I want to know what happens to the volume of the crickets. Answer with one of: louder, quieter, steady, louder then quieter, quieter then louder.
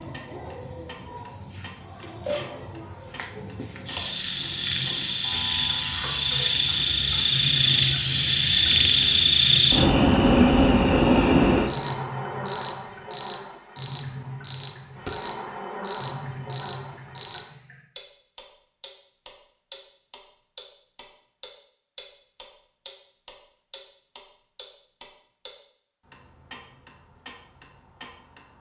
louder then quieter.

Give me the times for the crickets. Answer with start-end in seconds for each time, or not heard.
0.0-17.4.